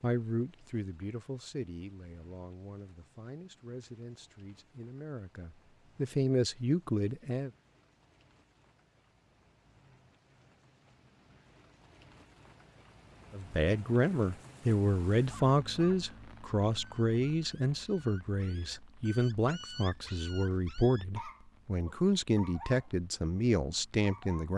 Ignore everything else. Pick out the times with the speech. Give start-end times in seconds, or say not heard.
0.0-7.5, 13.3-24.5.